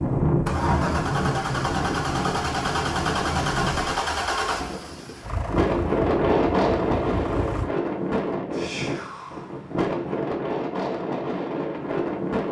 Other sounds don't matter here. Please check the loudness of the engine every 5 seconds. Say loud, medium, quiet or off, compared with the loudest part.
loud, medium, off.